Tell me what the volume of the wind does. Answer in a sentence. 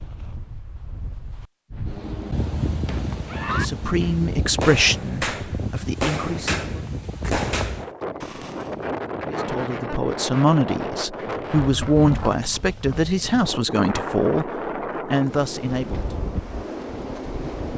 The volume of the wind stays about the same.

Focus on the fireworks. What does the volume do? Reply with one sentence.
The loudness of the fireworks stays about the same.